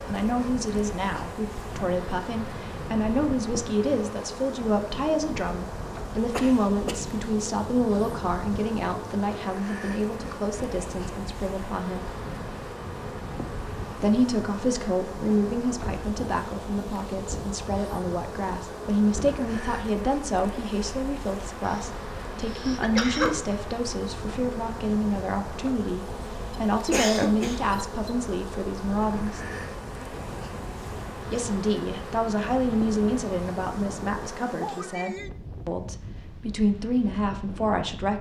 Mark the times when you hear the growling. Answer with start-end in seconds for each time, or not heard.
not heard.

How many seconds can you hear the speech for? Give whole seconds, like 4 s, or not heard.
34 s.